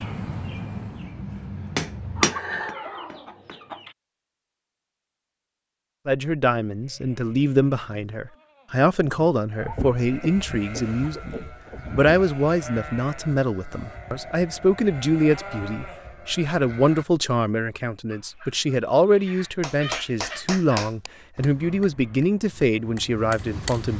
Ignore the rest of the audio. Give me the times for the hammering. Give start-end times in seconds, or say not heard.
0.0-3.7, 19.6-23.9.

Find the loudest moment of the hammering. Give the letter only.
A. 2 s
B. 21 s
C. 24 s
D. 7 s
A.